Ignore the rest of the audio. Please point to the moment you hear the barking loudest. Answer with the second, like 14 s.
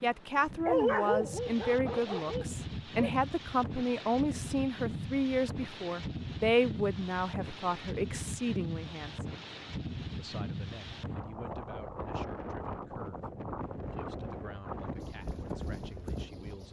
1 s.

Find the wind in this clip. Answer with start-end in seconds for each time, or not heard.
0.0-16.6.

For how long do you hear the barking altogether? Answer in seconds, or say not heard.
3 s.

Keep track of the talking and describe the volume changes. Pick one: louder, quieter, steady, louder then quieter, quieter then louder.
quieter.